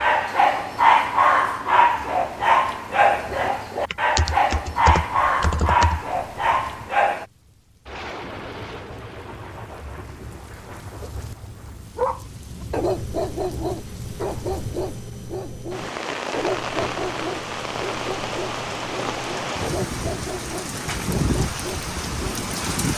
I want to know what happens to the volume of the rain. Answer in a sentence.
The loudness of the rain goes up.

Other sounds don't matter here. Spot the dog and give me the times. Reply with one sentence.
You can hear the dog from 0.0 to 7.2 s and from 11.9 to 22.5 s.